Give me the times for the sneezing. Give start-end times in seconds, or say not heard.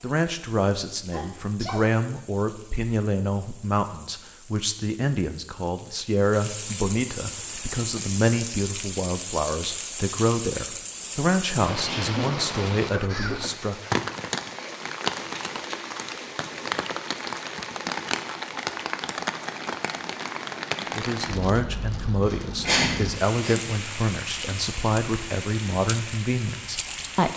1.1-1.9, 11.7-12.4, 22.6-23.6.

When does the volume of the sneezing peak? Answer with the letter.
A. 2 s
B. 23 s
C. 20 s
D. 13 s
B.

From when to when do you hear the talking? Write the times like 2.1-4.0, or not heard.
0.0-13.9, 20.9-27.3.